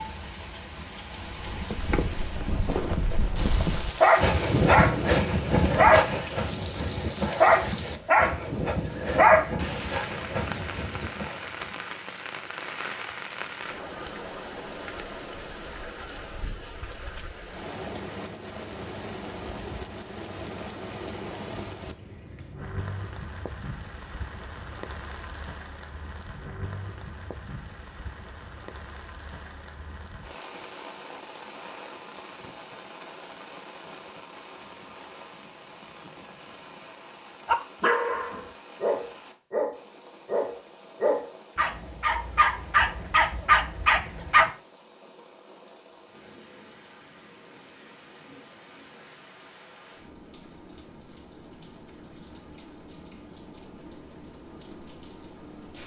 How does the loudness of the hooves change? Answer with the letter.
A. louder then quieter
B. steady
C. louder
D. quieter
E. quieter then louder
A.